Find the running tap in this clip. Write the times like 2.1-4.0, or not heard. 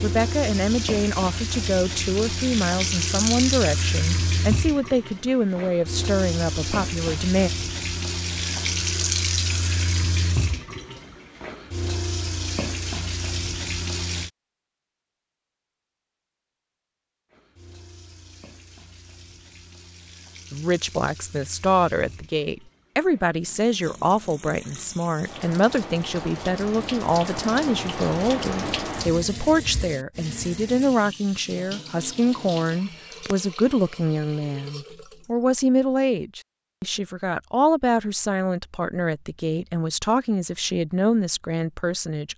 0.0-14.3, 17.3-35.5.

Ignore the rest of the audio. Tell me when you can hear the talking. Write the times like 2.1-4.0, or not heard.
0.0-7.5, 20.5-42.3.